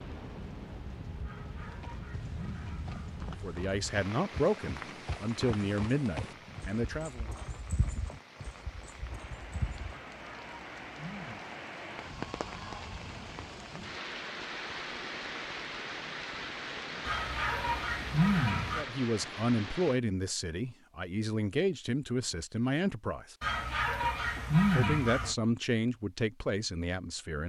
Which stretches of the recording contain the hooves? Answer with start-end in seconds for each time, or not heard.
1.6-10.0.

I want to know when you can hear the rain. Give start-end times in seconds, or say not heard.
0.0-20.0.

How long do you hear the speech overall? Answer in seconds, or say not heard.
11 s.